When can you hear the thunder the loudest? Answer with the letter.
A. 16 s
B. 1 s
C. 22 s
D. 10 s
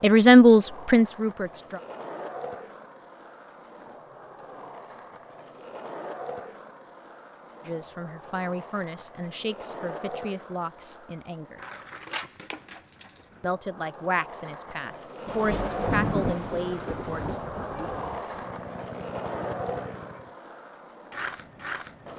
A.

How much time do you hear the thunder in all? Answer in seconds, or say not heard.
3 s.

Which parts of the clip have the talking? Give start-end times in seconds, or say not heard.
0.0-1.8, 7.7-11.6, 13.4-17.5.